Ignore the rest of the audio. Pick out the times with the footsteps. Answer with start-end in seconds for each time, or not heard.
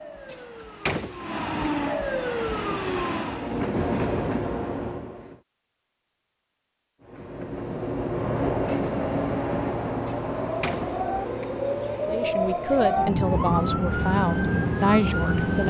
not heard.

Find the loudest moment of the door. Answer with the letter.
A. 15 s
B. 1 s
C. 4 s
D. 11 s
B.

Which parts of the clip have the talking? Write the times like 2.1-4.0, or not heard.
12.1-15.6.